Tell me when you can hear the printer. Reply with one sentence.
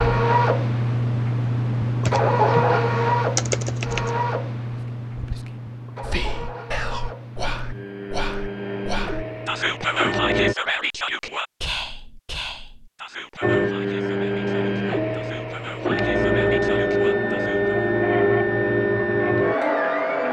You can hear the printer from 0.0 to 10.6 s and from 13.4 to 20.2 s.